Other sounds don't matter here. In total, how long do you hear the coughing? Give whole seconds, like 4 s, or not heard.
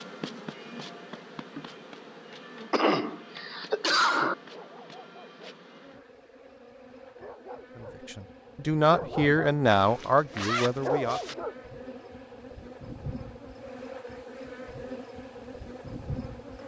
2 s.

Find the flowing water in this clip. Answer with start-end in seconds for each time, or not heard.
not heard.